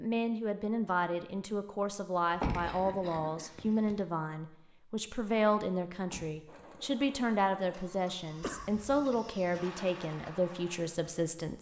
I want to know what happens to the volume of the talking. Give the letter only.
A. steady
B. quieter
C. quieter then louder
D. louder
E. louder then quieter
A.